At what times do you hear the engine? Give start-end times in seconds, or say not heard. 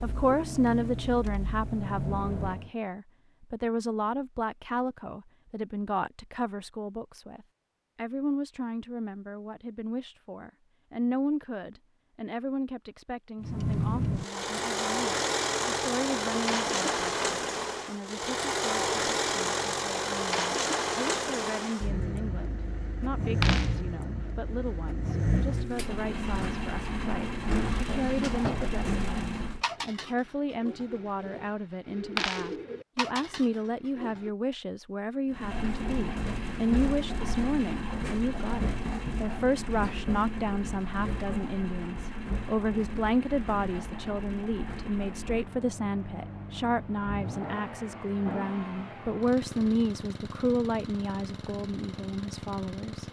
0.0-2.7, 13.4-29.6, 35.3-53.0.